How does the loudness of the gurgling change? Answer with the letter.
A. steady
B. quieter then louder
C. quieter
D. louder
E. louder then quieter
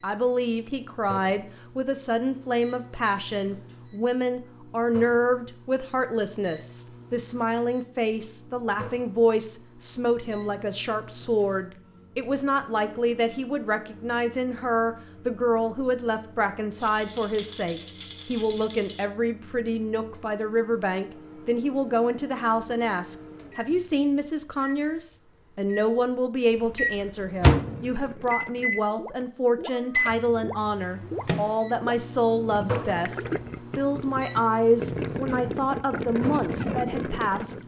D.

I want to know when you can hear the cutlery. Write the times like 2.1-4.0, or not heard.
not heard.